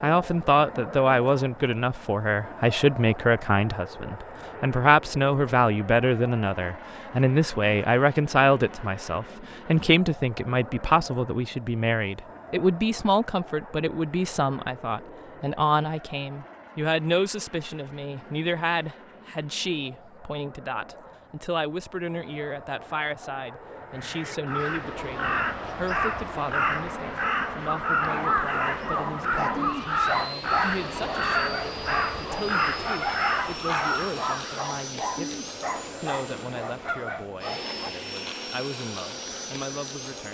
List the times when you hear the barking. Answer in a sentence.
You can hear the barking from 27.9 to 37.9 s.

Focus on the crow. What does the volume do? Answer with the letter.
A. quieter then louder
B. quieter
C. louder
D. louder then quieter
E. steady
E.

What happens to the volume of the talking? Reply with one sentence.
The volume of the talking goes down.